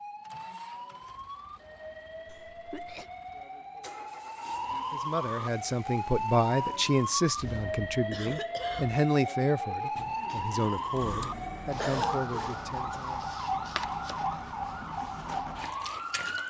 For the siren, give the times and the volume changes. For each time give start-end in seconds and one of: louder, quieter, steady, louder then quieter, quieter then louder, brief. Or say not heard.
0.0-16.4 louder.